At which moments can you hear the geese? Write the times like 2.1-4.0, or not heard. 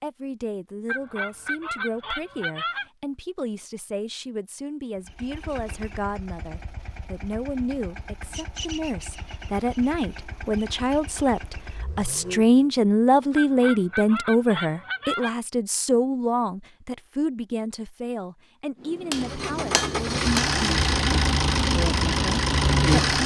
0.8-2.9, 13.3-15.3.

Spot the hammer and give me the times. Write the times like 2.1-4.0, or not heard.
18.8-20.6.